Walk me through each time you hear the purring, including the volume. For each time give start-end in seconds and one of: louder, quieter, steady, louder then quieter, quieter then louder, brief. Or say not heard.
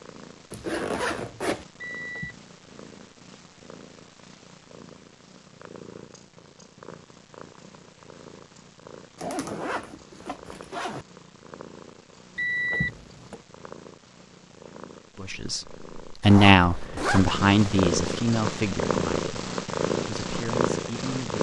0.0-21.3 louder.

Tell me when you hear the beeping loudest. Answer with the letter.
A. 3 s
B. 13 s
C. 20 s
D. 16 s
B.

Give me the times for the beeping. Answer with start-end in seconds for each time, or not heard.
1.8-2.4, 12.3-13.4.